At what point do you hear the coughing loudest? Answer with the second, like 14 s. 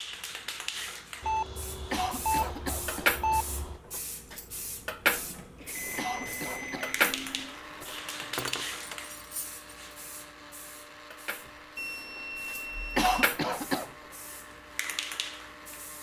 13 s.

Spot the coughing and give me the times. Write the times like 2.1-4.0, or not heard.
1.9-3.5, 6.0-8.3, 12.9-13.9.